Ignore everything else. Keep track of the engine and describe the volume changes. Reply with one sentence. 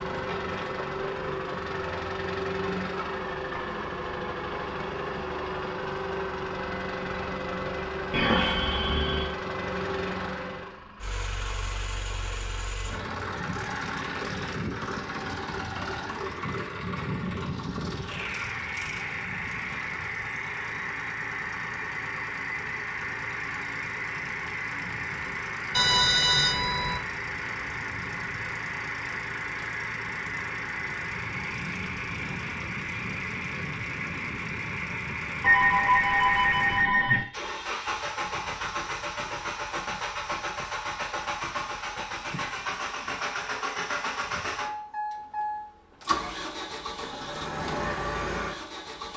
The volume of the engine stays about the same.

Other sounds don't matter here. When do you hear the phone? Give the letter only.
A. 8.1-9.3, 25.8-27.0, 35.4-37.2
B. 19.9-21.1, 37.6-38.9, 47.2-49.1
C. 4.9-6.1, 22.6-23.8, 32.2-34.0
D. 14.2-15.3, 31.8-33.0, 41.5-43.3
A.